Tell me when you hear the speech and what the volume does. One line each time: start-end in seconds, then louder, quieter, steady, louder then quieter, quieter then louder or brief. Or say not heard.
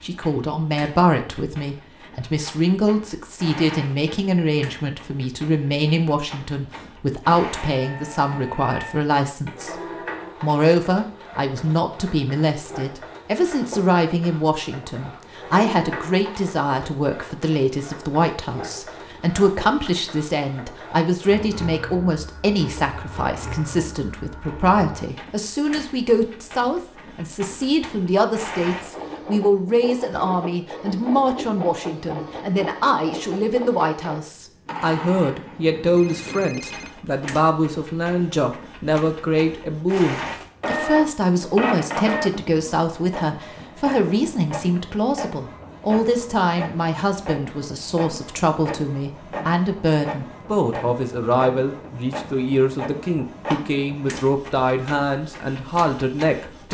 0.0-9.8 steady
10.4-56.6 steady.